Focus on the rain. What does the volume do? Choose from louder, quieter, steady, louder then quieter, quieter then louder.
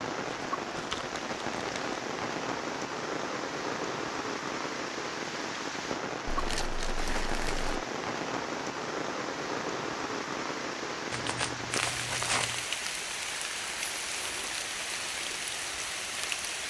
steady.